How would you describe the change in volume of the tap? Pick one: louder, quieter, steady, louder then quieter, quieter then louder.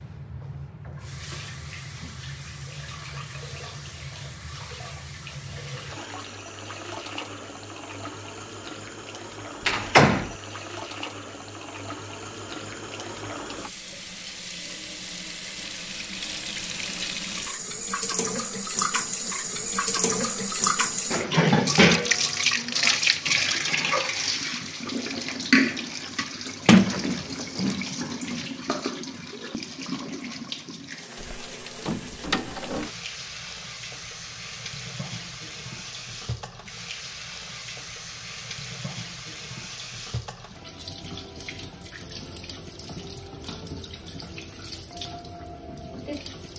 louder then quieter.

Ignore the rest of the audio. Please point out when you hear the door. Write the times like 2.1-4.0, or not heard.
9.7-10.3, 26.6-27.9, 31.2-32.9.